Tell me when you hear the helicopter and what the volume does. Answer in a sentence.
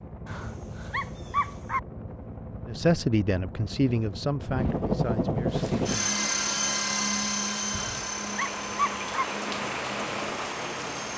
You can hear the helicopter from 0.0 to 11.1 s, getting louder then quieter.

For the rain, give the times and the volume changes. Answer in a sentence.
You can hear the rain from 5.5 to 11.1 s, getting louder.